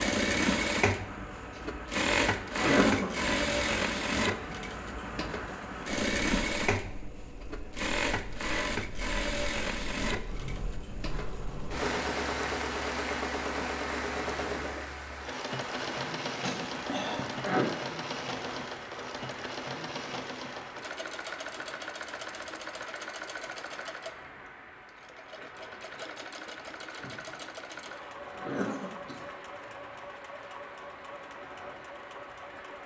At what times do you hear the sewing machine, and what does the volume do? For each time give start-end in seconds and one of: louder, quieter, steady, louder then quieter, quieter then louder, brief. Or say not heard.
0.0-32.8 quieter.